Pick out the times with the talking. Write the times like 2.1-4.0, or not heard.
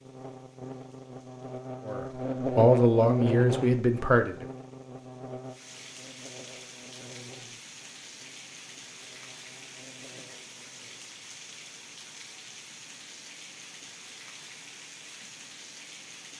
1.9-4.5.